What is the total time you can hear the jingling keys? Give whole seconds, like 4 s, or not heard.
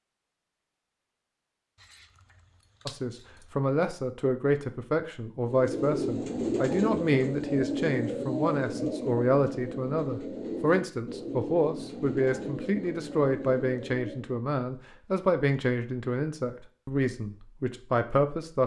2 s.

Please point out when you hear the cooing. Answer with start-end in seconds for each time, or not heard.
5.5-14.4.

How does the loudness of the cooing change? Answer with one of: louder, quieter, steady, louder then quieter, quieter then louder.
quieter.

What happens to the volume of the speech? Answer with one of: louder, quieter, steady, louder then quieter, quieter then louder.
steady.